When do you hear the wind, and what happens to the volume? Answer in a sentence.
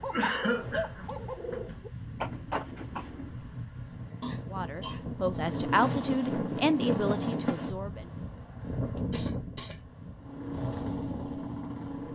The wind can be heard from 0.0 to 12.1 s, getting louder then quieter.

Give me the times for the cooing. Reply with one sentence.
You can hear the cooing from 0.0 to 3.4 s.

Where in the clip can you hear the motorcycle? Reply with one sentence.
You can hear the motorcycle from 5.3 to 7.5 s and from 10.2 to 12.1 s.